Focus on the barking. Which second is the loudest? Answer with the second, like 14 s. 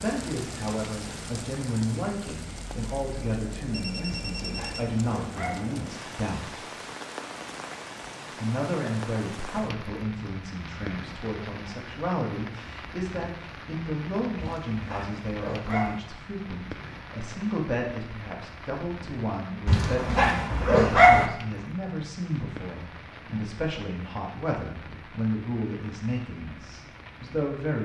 21 s.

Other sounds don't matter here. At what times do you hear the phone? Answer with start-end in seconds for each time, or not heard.
3.7-4.8.